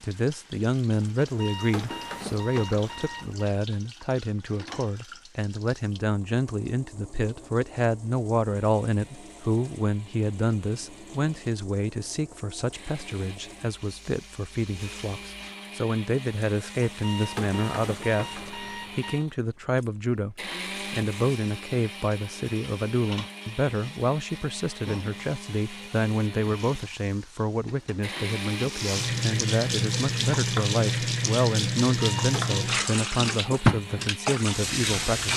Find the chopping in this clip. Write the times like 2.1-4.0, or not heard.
not heard.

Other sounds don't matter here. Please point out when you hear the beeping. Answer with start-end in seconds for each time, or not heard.
1.2-3.5, 16.8-19.2, 32.0-32.8.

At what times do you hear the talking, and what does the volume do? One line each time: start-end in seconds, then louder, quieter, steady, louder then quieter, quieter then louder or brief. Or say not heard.
0.0-35.3 steady.